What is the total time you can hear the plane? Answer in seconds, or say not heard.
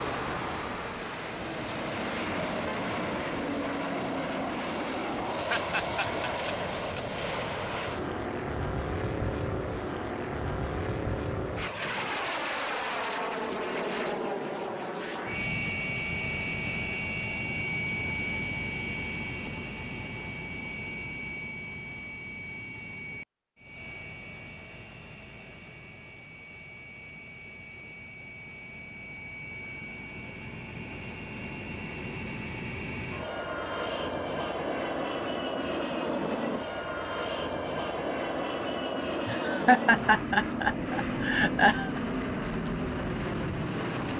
44 s.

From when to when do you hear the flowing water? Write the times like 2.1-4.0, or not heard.
not heard.